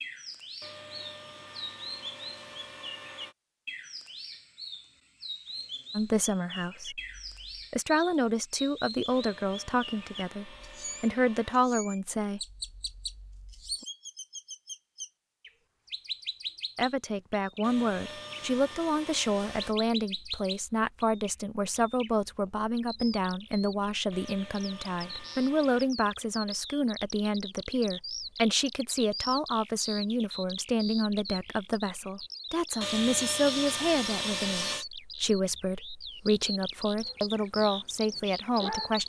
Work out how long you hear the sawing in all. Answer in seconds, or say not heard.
11 s.